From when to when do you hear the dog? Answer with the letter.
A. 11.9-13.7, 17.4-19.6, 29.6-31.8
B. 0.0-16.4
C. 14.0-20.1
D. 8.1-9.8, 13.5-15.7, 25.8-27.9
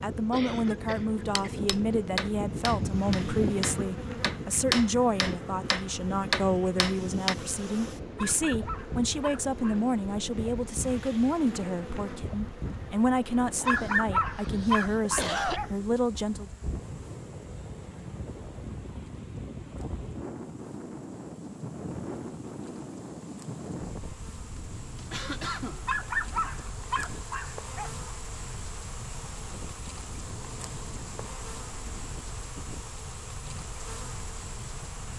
D.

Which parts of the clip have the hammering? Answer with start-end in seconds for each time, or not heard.
1.2-7.3.